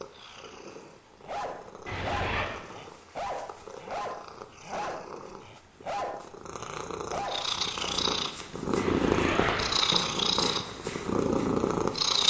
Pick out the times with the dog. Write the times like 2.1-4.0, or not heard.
1.2-8.1.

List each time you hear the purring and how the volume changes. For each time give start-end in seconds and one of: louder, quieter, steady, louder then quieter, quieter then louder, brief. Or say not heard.
0.0-12.2 louder.